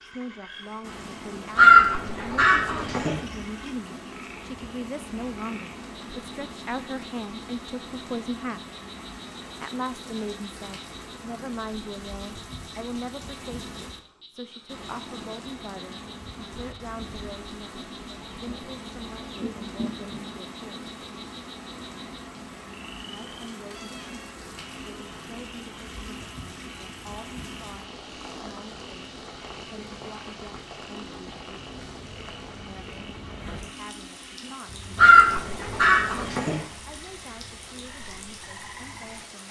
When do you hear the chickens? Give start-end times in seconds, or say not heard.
1.6-3.2, 18.1-20.2, 35.0-36.6.